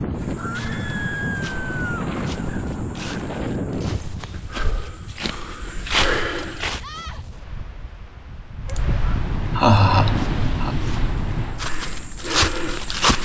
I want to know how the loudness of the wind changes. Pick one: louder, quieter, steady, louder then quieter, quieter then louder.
quieter then louder.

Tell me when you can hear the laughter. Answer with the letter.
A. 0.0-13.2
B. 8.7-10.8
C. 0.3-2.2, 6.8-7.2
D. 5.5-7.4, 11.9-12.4
B.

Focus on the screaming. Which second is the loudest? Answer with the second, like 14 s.
1 s.